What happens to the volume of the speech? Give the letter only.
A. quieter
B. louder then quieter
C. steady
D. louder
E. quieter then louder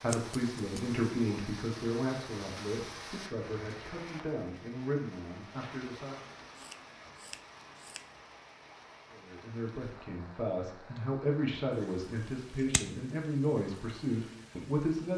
E.